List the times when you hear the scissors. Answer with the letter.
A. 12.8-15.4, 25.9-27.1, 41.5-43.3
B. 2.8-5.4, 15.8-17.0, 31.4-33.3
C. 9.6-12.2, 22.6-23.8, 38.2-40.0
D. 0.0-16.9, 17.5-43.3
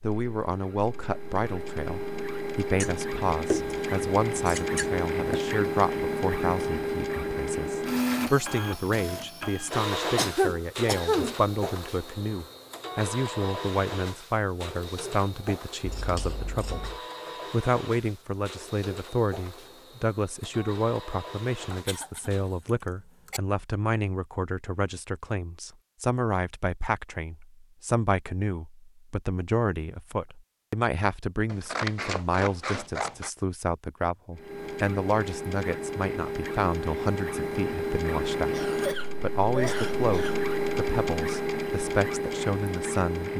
B.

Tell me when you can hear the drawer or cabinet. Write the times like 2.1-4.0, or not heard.
not heard.